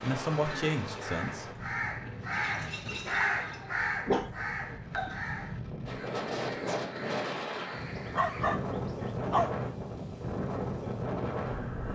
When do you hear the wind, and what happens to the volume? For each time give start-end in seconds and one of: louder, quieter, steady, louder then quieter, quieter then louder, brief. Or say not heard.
0.0-11.8 quieter then louder.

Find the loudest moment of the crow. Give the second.
3 s.